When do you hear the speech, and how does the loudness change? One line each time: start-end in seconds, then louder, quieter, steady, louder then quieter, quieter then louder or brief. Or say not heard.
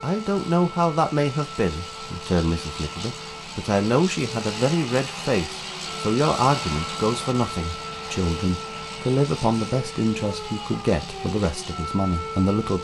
0.0-12.7 steady.